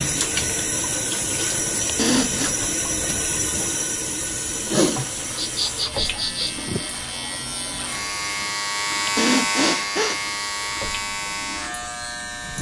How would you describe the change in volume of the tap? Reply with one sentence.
The loudness of the tap goes down.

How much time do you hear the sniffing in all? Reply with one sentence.
The sniffing can be heard for 4 seconds in total.